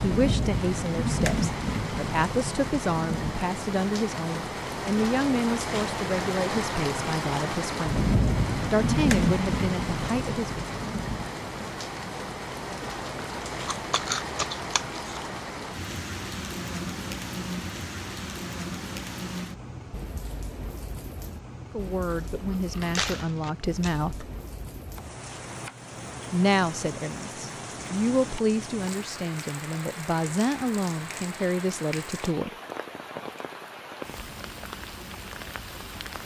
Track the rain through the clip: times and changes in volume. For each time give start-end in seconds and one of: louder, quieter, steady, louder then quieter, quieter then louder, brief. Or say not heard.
0.0-36.2 quieter.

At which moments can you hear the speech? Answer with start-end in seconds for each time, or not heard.
0.0-8.1, 8.7-10.6, 21.7-24.3, 26.3-32.5.